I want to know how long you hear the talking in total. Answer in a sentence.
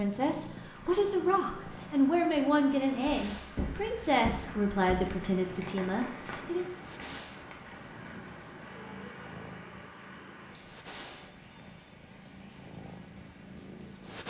You can hear the talking for 7 seconds altogether.